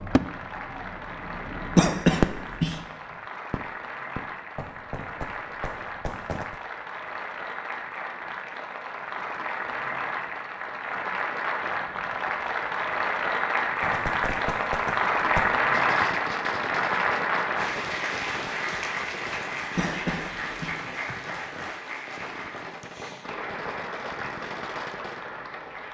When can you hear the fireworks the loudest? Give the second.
2 s.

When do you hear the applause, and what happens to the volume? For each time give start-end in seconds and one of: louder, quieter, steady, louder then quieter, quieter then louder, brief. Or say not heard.
0.0-25.8 louder then quieter.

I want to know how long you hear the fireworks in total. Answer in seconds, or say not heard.
18 s.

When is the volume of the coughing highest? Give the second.
2 s.